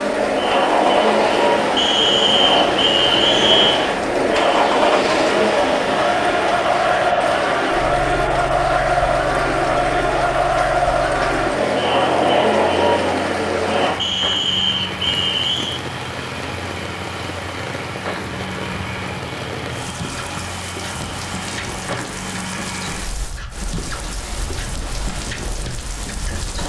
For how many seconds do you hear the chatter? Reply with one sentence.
The chatter can be heard for 14 seconds in total.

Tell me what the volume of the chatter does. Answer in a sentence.
The loudness of the chatter stays about the same.